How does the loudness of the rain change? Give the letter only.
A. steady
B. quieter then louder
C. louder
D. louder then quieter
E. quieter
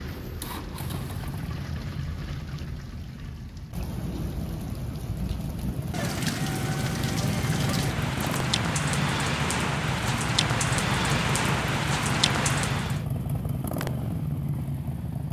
C.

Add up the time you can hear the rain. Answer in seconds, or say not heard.
13 s.